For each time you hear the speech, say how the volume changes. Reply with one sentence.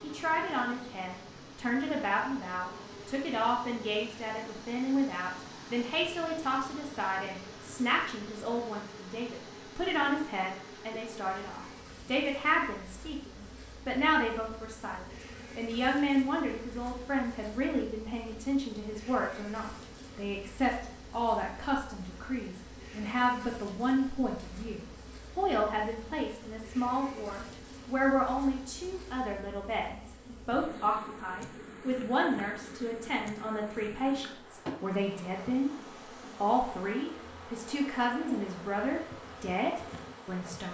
The speech can be heard from 0.0 to 35.7 s, at a steady volume; and from 36.4 to 40.6 s, at a steady volume.